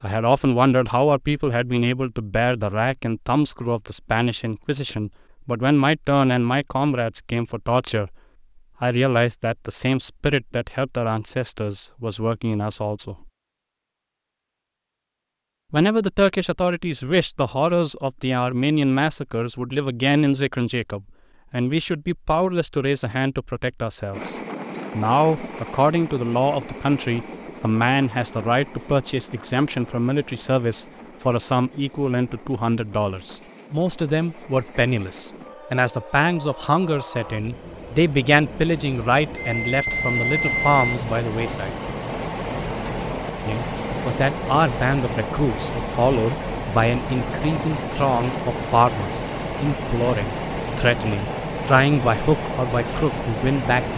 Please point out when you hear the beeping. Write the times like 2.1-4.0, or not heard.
39.4-41.0.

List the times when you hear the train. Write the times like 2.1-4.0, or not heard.
24.1-53.9.